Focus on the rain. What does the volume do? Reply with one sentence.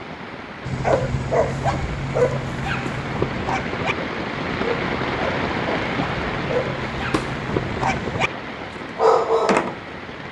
The volume of the rain goes up, then down.